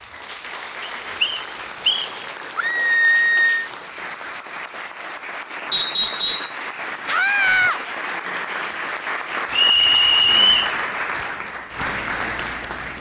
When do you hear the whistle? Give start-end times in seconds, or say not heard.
0.8-2.1, 5.7-6.5, 9.5-10.8.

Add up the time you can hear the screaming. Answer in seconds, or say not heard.
2 s.